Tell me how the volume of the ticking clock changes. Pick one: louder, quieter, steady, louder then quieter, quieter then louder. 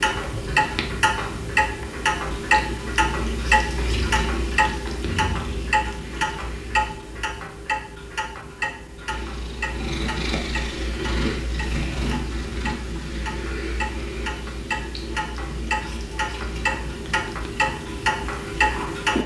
quieter then louder.